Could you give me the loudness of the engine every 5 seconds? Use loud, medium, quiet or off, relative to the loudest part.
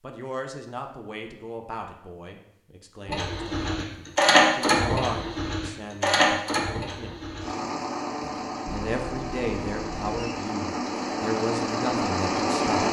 loud, medium, medium.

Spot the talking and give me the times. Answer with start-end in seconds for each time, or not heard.
0.0-7.2, 8.2-12.8.